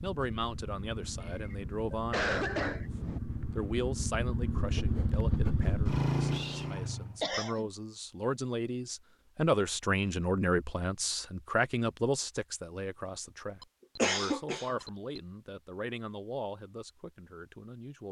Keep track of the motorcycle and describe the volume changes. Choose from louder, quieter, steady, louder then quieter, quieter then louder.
louder.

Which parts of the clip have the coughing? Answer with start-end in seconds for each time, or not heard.
1.2-3.2, 7.2-7.7, 13.9-15.2.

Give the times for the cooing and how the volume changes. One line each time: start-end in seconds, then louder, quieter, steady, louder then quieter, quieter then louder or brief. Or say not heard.
not heard.